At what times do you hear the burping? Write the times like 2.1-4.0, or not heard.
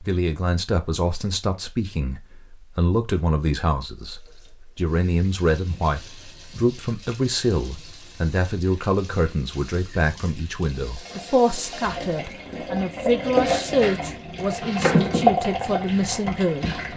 not heard.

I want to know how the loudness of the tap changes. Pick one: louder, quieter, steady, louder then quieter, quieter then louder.
louder.